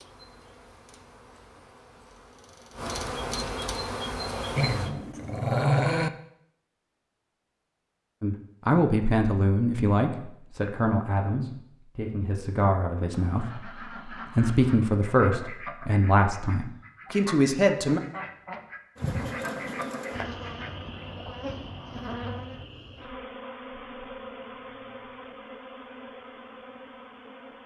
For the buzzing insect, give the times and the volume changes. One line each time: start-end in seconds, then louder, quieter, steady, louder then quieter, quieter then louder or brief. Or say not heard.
0.0-4.9 louder
18.9-27.6 quieter.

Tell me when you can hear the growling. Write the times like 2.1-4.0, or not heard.
4.5-6.1.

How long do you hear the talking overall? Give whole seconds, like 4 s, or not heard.
10 s.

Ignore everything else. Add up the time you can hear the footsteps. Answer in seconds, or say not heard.
not heard.